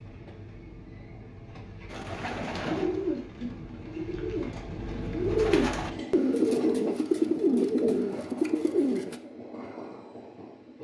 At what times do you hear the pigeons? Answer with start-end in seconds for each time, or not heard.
1.9-9.2.